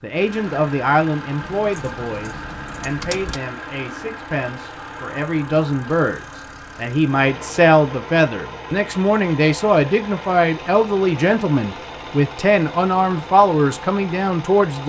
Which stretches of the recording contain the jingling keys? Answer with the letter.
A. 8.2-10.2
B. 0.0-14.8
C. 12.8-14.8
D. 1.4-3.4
D.